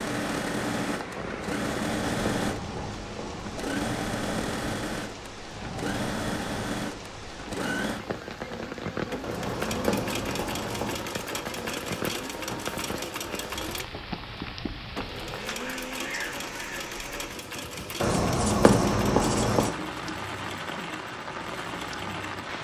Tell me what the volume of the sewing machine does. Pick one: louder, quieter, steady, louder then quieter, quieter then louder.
quieter.